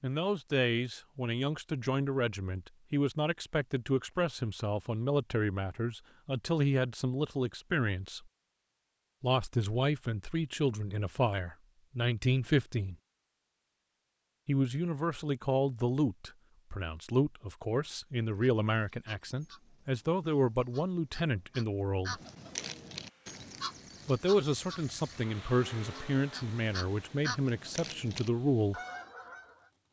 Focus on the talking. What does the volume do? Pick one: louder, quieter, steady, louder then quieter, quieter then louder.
steady.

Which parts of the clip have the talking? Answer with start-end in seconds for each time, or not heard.
0.0-8.2, 9.2-12.9, 14.4-22.2, 24.1-28.8.